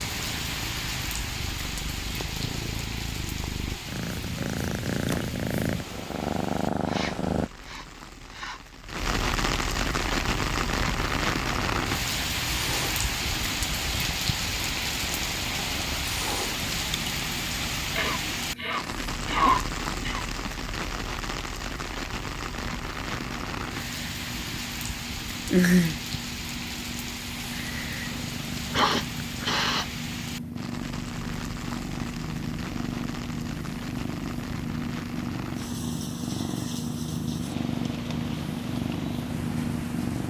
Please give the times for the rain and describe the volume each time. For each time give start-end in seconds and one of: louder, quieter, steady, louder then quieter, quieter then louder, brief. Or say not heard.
0.0-40.2 louder then quieter.